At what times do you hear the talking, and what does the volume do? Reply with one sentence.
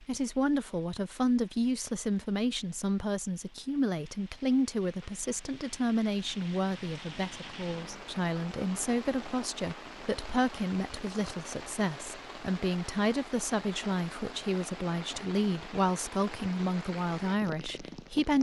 The talking can be heard from 0.0 to 18.3 s, at a steady volume.